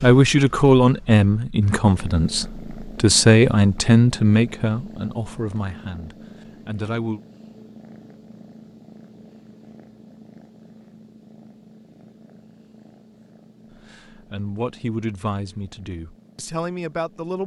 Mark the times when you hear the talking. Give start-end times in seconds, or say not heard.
0.0-7.2, 13.8-17.4.